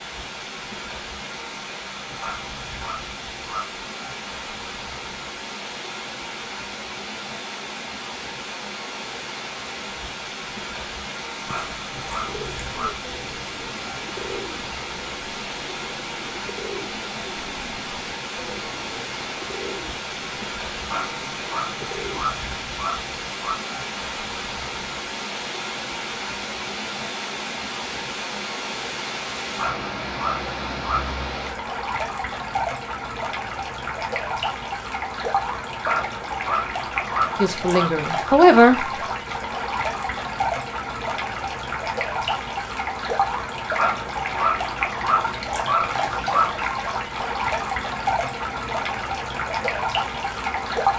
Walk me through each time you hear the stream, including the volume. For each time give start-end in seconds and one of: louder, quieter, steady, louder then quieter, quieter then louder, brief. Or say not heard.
0.0-50.9 louder.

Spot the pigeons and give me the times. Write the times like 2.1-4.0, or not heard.
11.4-22.3.